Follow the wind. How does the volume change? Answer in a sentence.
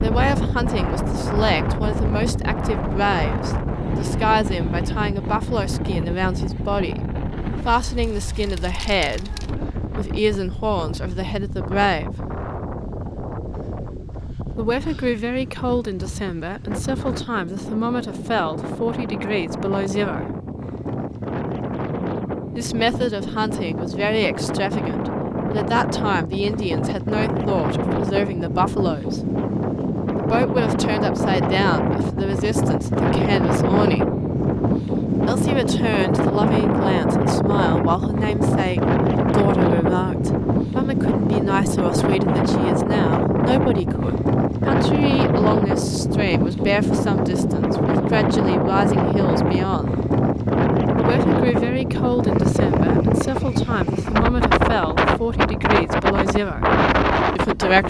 The loudness of the wind goes up.